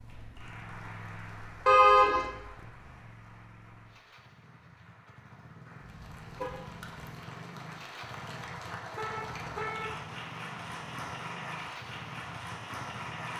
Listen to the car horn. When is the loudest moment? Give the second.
2 s.